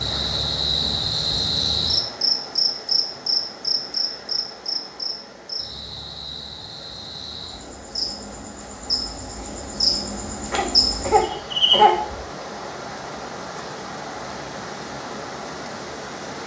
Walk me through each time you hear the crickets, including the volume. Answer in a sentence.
You can hear the crickets from 0.0 to 11.8 s, getting quieter then louder.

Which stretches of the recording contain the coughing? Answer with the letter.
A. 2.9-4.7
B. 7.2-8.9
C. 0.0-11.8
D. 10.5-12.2
D.